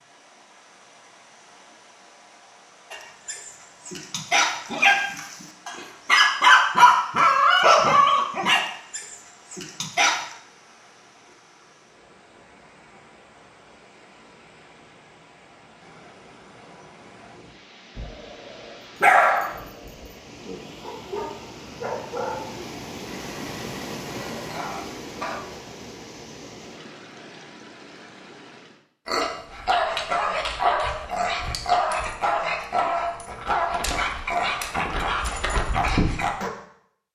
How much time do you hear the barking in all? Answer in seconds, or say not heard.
22 s.